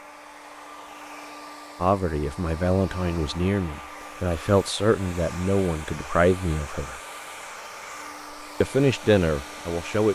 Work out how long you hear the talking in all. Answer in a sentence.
You can hear the talking for 7 seconds altogether.